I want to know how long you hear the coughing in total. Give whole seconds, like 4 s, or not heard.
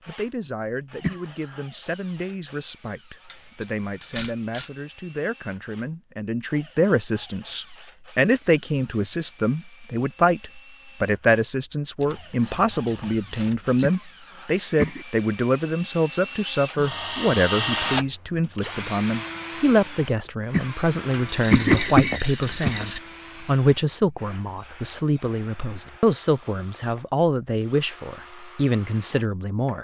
4 s.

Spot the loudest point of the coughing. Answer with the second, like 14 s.
22 s.